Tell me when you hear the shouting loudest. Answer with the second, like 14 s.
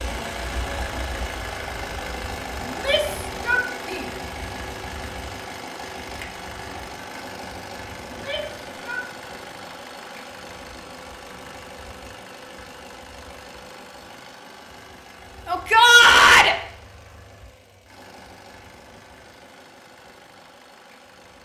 16 s.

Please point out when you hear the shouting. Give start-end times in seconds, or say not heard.
2.6-4.0, 8.1-9.0, 15.4-16.6.